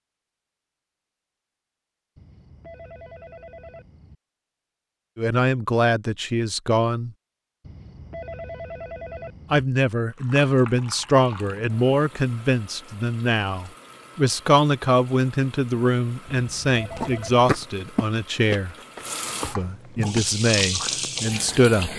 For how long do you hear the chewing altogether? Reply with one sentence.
You can hear the chewing for 5 seconds altogether.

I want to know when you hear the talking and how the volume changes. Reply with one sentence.
You can hear the talking briefly from 5.2 to 7.1 s; from 9.5 to 18.8 s, at a steady volume; and briefly from 19.4 to 21.9 s.